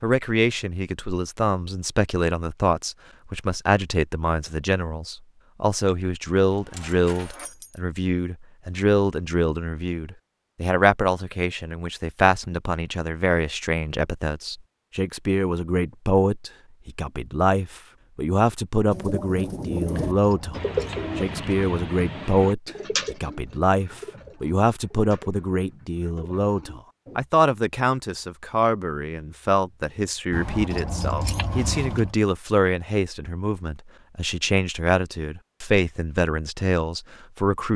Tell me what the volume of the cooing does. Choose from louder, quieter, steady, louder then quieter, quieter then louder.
quieter.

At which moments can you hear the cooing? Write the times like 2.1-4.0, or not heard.
18.9-27.2.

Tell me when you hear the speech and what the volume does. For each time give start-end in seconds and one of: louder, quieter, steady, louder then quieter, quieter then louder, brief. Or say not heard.
0.0-37.7 steady.